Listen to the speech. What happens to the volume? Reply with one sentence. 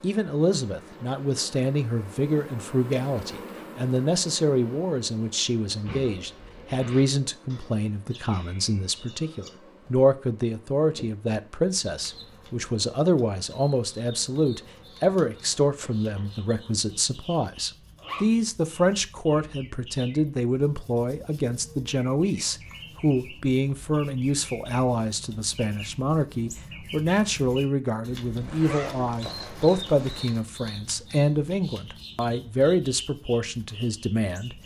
The volume of the speech stays about the same.